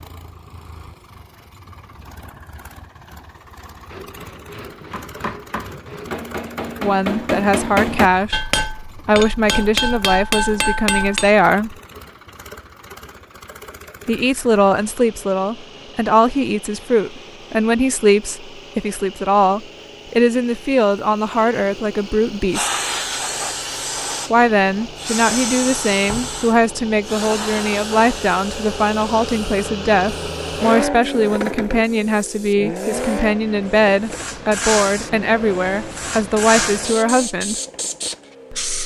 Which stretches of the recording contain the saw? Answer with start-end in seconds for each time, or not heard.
3.9-6.1.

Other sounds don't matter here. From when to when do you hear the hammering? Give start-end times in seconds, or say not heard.
4.9-11.4.